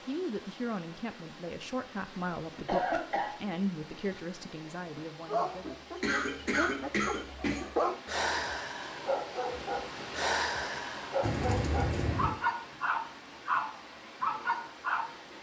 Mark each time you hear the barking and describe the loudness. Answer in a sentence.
You can hear the barking from 5.2 to 15.2 s, getting louder.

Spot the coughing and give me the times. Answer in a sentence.
The coughing can be heard from 2.6 to 3.3 s, from 6.0 to 7.7 s and from 11.2 to 12.3 s.